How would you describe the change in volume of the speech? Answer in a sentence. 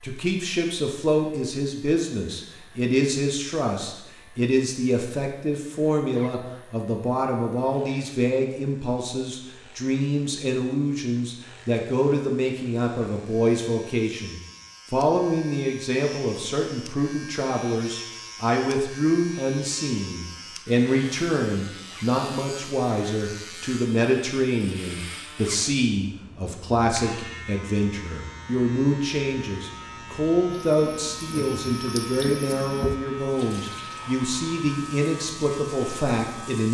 The volume of the speech stays about the same.